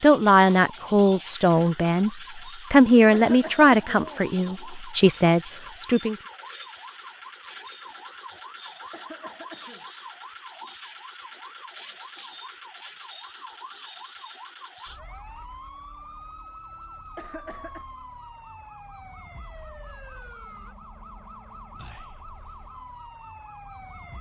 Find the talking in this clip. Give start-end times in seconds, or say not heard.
0.0-6.2.